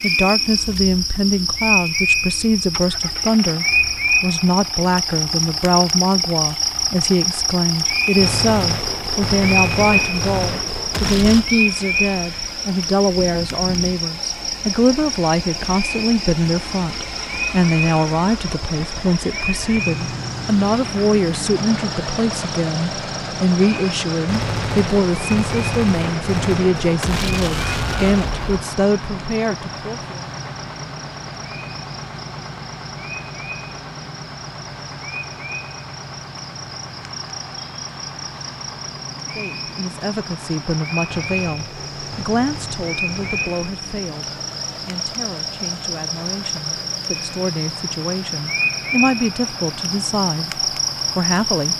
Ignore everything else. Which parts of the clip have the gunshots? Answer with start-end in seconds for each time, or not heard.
8.2-11.5, 24.2-28.6, 41.1-43.6.